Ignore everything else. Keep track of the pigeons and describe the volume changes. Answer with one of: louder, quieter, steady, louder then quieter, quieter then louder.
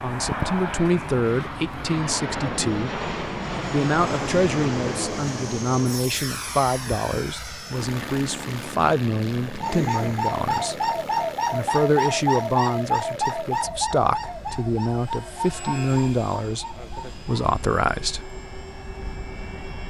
quieter.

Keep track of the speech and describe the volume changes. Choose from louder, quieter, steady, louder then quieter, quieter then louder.
steady.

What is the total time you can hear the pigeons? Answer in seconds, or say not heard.
8 s.